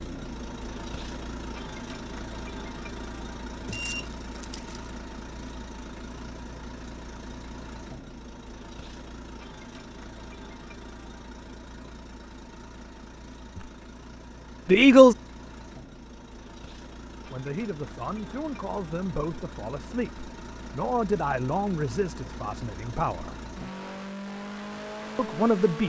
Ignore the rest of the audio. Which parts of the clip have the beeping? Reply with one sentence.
You can hear the beeping from 3.5 to 4.0 s.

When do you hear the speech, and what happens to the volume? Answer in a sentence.
You can hear the speech briefly from 14.7 to 15.2 s; from 17.2 to 23.4 s, getting louder then quieter; and briefly from 25.1 to 25.8 s.